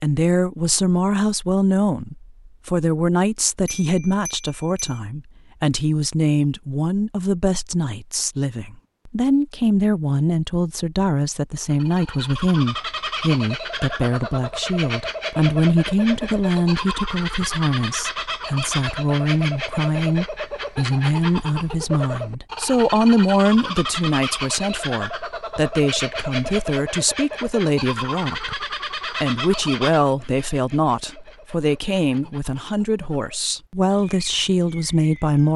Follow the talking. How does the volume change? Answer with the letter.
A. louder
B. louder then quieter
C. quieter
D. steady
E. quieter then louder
D.